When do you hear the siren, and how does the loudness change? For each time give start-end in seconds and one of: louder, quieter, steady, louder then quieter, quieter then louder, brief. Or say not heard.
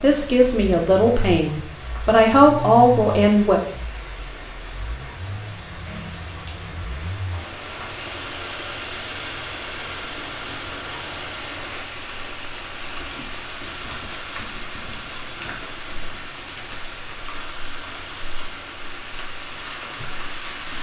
not heard.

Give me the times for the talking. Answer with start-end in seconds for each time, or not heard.
0.0-3.6.